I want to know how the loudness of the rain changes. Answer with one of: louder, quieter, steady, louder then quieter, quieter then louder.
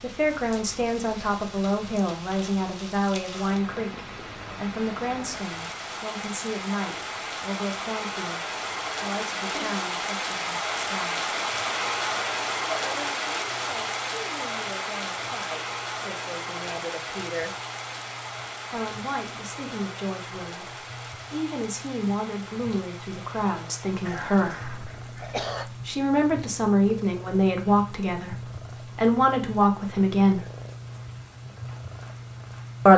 louder then quieter.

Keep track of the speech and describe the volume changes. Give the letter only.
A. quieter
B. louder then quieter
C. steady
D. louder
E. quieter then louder
E.